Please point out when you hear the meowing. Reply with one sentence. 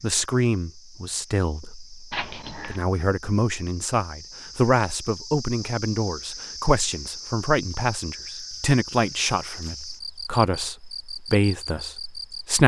The meowing can be heard from 2.1 to 2.8 s.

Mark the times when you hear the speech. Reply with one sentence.
You can hear the speech from 0.0 to 12.6 s.